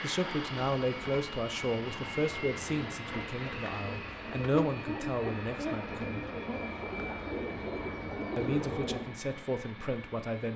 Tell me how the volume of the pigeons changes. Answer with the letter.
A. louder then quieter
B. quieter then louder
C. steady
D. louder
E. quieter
D.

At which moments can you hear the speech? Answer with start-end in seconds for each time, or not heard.
0.0-6.2, 8.3-10.5.